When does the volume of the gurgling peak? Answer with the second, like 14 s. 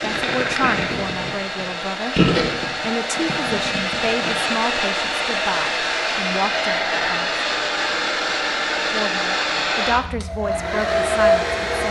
2 s.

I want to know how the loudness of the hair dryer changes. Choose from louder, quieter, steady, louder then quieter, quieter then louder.
louder.